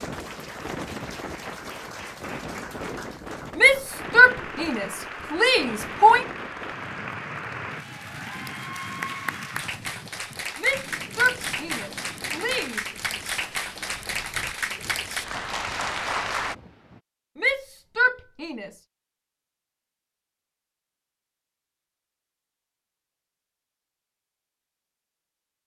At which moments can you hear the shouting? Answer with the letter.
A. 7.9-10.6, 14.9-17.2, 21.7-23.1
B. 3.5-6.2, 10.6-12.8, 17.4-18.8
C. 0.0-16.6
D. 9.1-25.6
B.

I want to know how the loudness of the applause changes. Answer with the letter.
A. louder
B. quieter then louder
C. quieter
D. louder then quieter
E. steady
A.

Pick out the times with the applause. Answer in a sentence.
You can hear the applause from 0.0 to 16.6 s.